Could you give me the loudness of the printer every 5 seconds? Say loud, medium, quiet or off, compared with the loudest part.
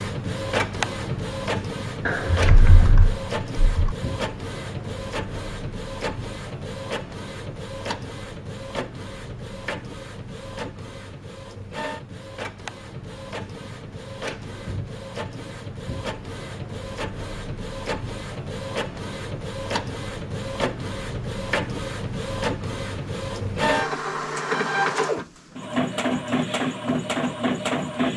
loud, medium, medium, medium, loud, loud.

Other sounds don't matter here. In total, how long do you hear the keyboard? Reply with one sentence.
You can hear the keyboard for 2 seconds altogether.